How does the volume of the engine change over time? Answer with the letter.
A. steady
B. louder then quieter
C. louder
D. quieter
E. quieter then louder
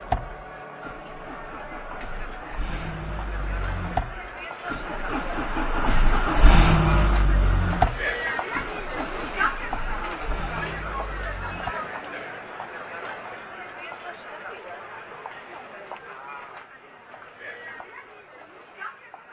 B.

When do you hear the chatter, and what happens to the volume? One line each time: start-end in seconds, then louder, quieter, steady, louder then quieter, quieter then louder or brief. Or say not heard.
0.0-19.2 louder then quieter.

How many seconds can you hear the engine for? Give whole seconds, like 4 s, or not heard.
12 s.